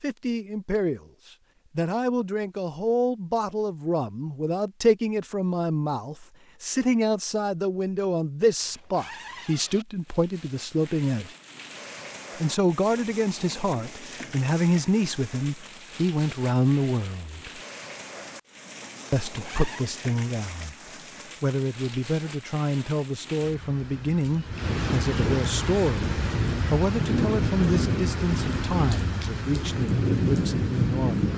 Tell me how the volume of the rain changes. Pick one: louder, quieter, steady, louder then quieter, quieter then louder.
louder.